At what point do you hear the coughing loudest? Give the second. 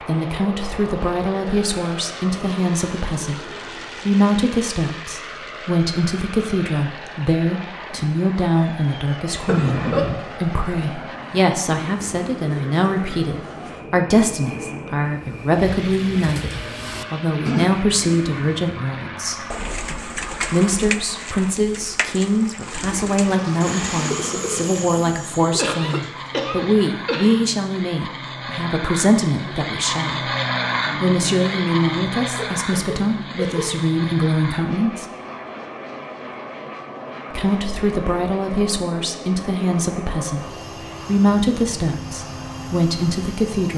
10 s.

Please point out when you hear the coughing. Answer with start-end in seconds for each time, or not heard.
9.4-10.2, 25.6-27.4, 32.3-33.8.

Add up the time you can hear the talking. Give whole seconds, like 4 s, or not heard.
40 s.